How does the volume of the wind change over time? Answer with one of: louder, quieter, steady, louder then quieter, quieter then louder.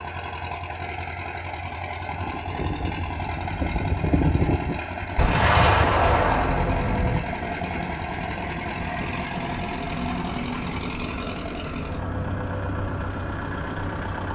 quieter.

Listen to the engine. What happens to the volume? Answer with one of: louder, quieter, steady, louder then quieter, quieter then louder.
steady.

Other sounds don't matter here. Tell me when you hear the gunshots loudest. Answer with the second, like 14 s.
6 s.